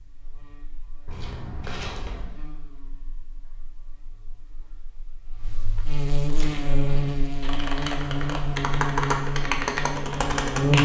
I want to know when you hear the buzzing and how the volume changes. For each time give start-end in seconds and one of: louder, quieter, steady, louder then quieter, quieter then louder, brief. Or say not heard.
0.0-10.8 louder.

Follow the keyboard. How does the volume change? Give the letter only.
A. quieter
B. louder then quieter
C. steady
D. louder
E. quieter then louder
D.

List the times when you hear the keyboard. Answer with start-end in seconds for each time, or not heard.
6.3-10.8.